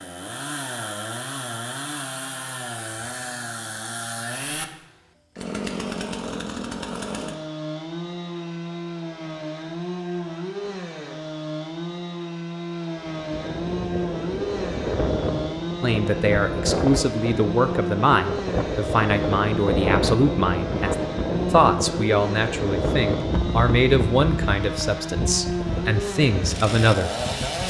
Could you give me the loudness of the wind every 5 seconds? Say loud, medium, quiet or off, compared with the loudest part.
off, off, medium, loud, loud, medium.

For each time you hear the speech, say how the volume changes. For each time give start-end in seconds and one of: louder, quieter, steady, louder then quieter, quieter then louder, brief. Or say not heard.
15.8-27.6 steady.